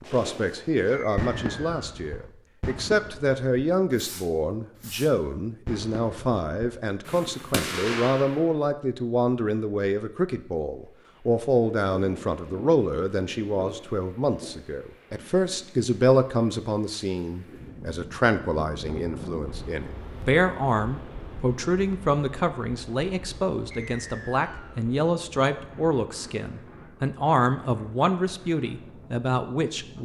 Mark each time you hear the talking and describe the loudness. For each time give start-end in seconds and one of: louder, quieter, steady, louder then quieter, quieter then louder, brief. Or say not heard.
0.0-30.0 steady.